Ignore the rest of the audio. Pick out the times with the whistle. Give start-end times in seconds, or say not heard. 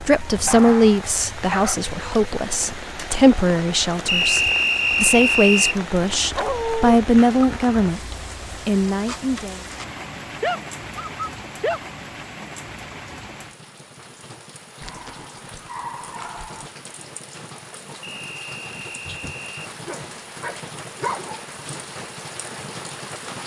4.0-5.8, 18.0-19.7.